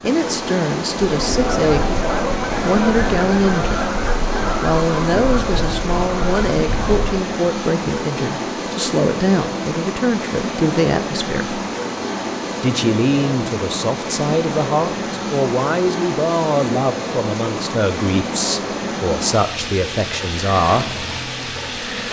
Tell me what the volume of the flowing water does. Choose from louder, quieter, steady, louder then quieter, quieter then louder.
steady.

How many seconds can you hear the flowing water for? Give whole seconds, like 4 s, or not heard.
22 s.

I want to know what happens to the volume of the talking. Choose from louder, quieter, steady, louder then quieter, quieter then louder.
steady.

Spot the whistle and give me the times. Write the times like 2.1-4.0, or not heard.
not heard.